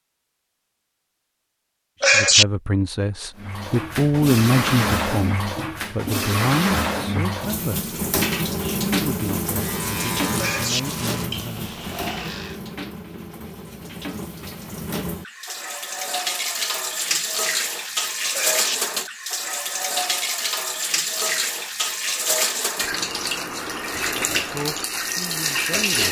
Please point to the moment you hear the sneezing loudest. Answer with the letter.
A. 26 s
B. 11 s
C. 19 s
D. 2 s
D.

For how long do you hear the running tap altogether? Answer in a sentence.
The running tap can be heard for 23 seconds in total.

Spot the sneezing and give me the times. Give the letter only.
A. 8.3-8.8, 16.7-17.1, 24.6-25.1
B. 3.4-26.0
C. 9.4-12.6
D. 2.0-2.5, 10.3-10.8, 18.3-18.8
D.